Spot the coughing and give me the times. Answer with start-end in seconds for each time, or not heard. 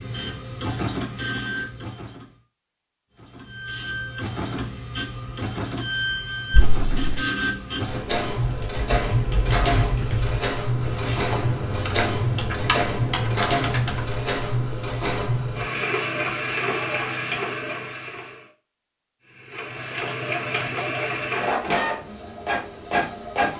6.5-7.2.